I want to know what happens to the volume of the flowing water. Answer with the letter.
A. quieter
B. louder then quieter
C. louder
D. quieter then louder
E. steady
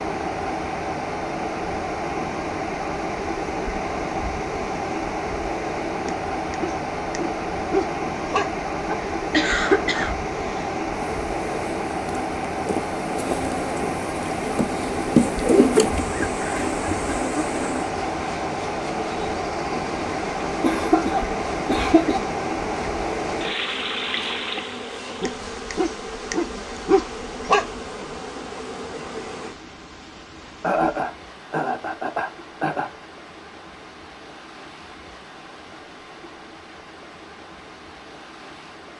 A.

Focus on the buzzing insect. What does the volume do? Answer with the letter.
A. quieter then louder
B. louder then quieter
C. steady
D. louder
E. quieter
B.